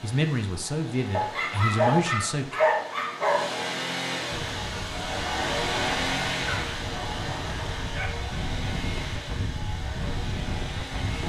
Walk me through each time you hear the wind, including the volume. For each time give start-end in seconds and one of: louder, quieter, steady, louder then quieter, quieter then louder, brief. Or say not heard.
4.3-11.2 louder.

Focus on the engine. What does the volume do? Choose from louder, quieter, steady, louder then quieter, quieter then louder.
louder then quieter.